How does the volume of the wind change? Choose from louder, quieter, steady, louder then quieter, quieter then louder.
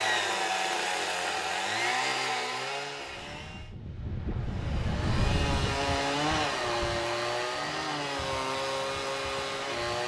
louder then quieter.